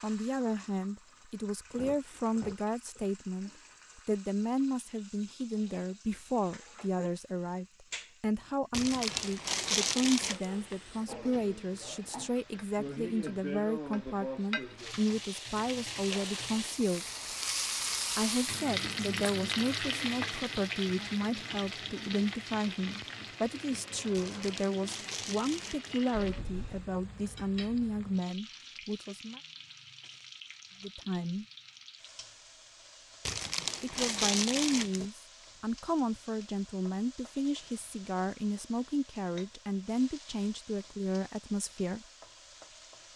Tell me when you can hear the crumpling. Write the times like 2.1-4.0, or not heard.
8.7-10.4, 24.1-25.9, 33.2-35.1.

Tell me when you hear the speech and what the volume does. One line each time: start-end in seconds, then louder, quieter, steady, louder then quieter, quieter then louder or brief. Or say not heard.
0.0-17.1 steady
18.1-29.4 steady
30.8-31.4 brief
33.8-42.0 steady.